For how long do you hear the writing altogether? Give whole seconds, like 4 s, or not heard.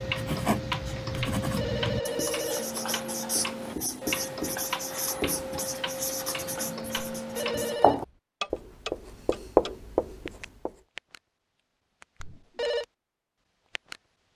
11 s.